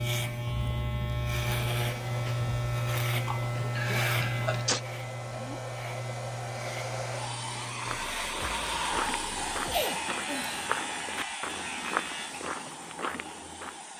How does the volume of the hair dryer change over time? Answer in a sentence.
The loudness of the hair dryer goes up, then down.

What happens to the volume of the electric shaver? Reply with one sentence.
The loudness of the electric shaver goes down.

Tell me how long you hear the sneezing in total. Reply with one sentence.
You can hear the sneezing for 3 seconds altogether.